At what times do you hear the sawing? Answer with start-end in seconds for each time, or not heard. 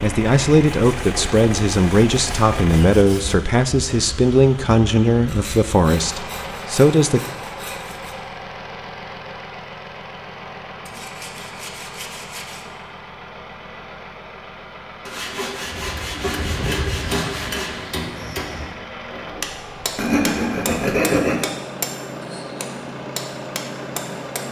0.7-3.4, 5.2-8.2, 10.8-12.7, 15.1-17.7, 19.9-21.5.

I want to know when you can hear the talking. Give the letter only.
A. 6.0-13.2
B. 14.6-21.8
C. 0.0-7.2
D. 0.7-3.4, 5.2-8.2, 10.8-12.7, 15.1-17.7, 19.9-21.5
C.